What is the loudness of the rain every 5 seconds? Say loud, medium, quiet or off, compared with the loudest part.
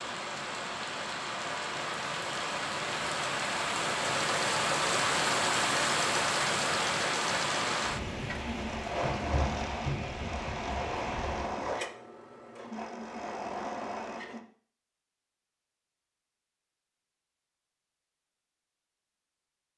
loud, loud, medium, off.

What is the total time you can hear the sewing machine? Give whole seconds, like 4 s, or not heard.
10 s.